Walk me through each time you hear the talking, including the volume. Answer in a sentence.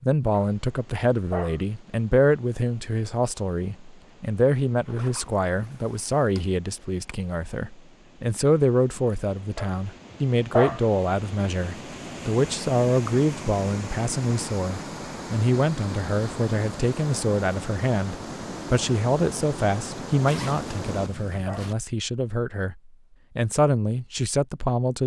You can hear the talking from 0.0 to 25.0 s, at a steady volume.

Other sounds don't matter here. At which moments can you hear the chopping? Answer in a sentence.
You can't hear the chopping here.